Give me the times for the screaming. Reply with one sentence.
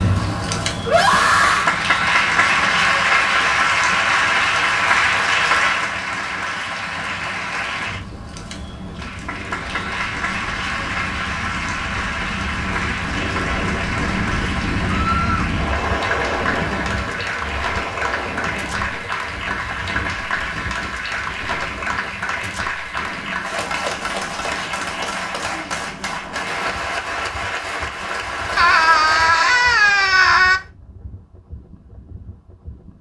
The screaming can be heard from 0.8 to 1.8 s, from 14.9 to 15.5 s and from 28.6 to 30.6 s.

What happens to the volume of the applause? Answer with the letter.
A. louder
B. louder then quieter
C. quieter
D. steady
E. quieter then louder
C.